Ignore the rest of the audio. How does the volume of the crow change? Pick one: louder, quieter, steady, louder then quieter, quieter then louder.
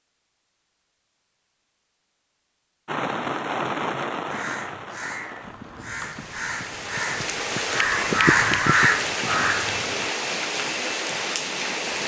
louder.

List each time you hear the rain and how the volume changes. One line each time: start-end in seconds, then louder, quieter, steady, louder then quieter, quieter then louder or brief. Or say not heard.
2.9-12.0 quieter then louder.